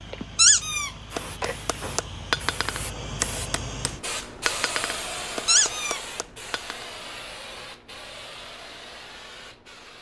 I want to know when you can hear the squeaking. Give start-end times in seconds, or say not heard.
0.3-0.9, 5.5-6.0.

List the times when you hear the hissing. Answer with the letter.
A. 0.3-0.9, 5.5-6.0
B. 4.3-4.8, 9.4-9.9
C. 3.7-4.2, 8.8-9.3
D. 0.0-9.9
D.